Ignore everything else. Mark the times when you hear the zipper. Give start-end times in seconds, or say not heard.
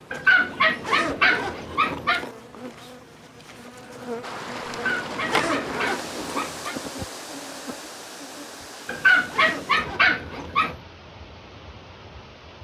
0.4-2.4, 4.8-6.5, 8.8-10.7.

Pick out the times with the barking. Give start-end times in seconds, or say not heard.
0.1-2.2, 4.7-6.8, 8.8-10.8.